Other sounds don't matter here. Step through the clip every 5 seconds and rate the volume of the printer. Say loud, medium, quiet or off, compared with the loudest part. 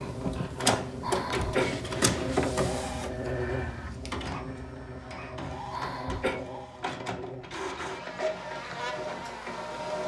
loud, medium.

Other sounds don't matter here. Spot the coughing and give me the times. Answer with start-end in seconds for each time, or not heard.
1.0-1.8, 5.7-6.4.